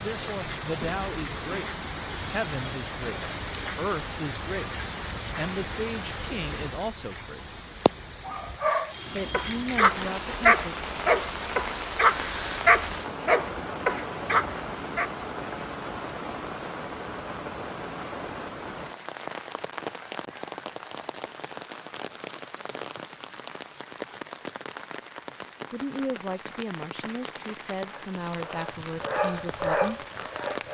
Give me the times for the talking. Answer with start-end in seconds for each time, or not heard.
0.0-7.6, 9.1-10.8, 25.7-30.1.